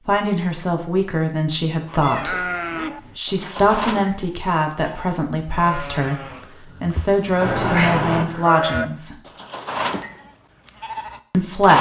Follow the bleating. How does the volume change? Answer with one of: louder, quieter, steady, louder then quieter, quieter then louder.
quieter then louder.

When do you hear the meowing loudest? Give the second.
8 s.